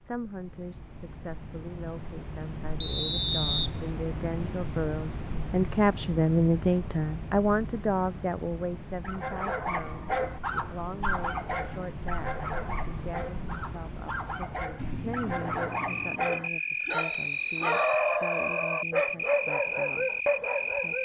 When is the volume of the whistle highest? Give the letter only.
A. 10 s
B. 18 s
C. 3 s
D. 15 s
C.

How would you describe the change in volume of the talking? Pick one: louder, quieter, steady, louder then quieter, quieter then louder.
louder then quieter.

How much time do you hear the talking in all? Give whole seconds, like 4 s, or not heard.
21 s.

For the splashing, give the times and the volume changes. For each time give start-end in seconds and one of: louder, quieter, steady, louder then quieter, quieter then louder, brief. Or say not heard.
not heard.